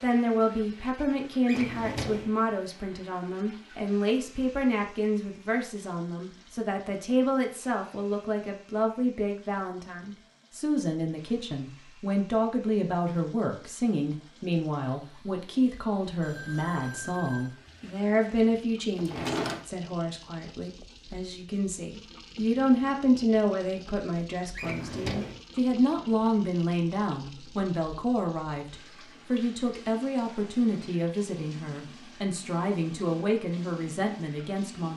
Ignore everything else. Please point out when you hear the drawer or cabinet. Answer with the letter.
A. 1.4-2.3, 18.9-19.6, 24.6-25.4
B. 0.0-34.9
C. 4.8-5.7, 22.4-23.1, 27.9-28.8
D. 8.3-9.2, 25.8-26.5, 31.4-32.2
A.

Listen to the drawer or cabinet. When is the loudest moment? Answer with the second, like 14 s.
19 s.